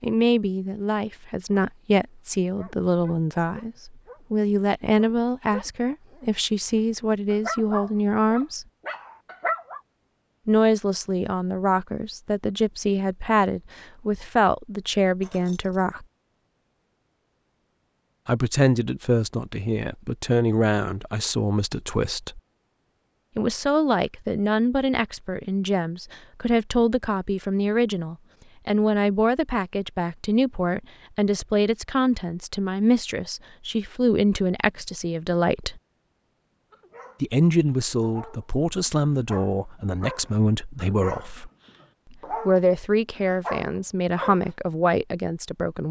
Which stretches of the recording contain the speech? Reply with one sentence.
The speech can be heard from 0.0 to 8.7 s, from 10.4 to 16.1 s, from 18.2 to 22.4 s, from 23.4 to 35.8 s, from 37.2 to 41.5 s and from 42.1 to 45.8 s.